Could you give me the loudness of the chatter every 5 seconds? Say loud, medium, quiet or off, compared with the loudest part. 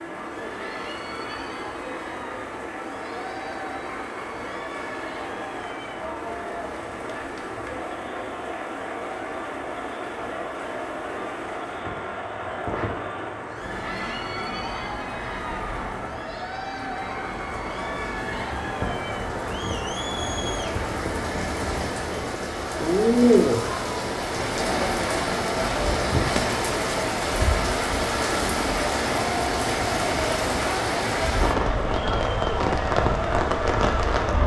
medium, medium, medium, medium, loud, loud, loud.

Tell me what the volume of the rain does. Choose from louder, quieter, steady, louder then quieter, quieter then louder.
louder.